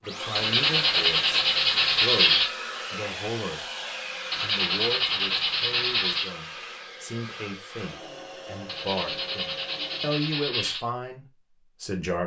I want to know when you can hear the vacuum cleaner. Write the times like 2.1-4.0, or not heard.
0.0-10.2.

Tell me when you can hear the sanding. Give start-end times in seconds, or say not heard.
0.3-2.5, 4.3-6.3, 8.7-10.8.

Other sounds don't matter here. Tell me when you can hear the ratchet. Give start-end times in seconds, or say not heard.
not heard.